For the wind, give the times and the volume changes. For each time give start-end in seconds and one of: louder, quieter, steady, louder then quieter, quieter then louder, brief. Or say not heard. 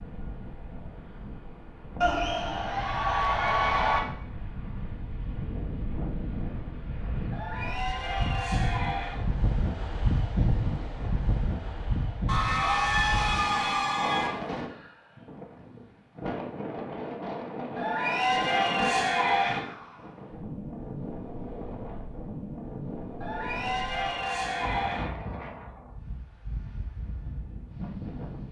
0.0-28.4 louder then quieter.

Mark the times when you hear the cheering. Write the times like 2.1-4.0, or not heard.
2.0-4.0, 7.3-9.2, 12.2-14.3, 17.8-19.6, 23.2-25.1.